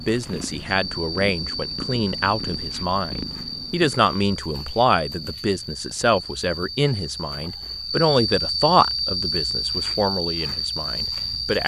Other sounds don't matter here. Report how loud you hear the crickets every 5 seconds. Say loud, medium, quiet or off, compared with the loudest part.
medium, loud, loud.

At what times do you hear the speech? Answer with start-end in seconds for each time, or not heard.
0.0-11.6.